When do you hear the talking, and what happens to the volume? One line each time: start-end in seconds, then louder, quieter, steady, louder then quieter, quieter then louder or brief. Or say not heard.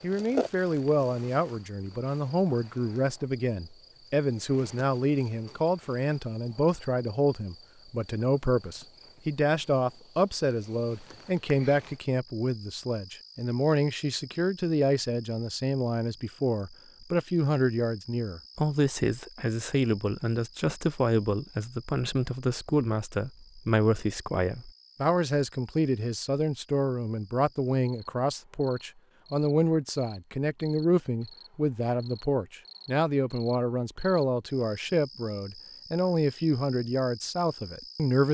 0.0-38.2 steady.